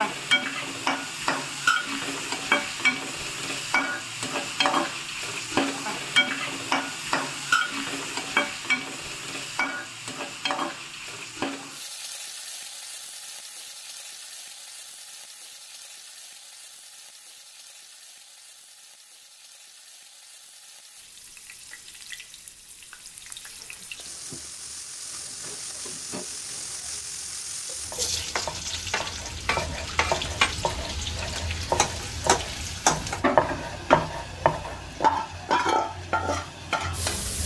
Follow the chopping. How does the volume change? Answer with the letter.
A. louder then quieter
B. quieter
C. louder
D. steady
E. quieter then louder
C.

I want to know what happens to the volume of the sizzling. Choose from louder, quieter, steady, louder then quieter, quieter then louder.
quieter then louder.